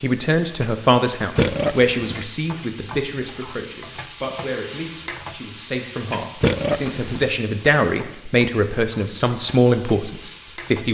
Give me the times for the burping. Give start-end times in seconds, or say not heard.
1.4-2.2, 6.4-7.3.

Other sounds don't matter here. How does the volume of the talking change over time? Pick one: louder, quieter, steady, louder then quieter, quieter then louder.
quieter then louder.